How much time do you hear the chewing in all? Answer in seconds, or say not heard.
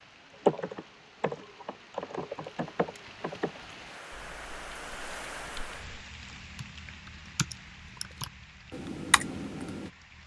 not heard.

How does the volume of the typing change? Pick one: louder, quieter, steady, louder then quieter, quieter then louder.
quieter then louder.